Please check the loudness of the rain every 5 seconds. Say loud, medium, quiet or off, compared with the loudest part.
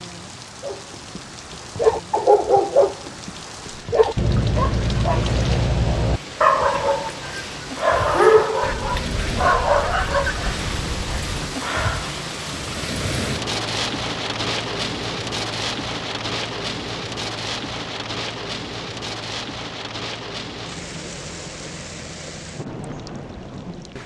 medium, medium, loud, loud, medium.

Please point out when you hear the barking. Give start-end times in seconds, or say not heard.
0.6-10.6.